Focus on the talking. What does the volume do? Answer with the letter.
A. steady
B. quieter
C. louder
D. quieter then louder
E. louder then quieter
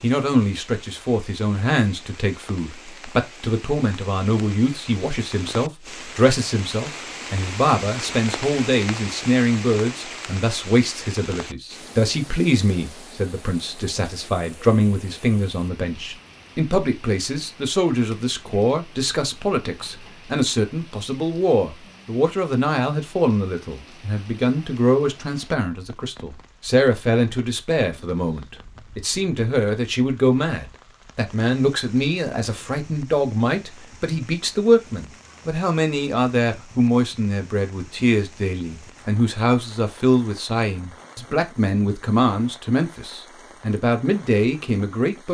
A.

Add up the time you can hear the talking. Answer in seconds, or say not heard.
45 s.